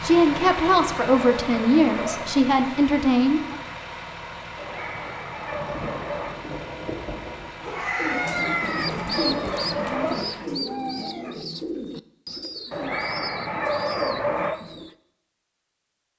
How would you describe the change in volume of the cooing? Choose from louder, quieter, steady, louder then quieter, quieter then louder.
quieter.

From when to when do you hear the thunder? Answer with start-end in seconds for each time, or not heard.
5.5-7.5.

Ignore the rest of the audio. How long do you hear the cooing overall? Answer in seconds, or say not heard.
7 s.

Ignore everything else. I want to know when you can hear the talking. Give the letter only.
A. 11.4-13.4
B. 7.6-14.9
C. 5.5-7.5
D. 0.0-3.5
D.